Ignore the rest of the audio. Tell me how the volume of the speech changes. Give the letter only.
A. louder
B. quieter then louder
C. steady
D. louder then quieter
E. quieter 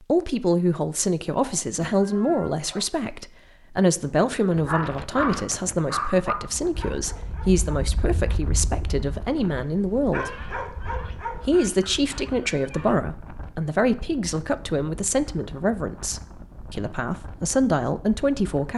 C.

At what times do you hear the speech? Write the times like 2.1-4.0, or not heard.
0.0-10.5, 11.4-18.7.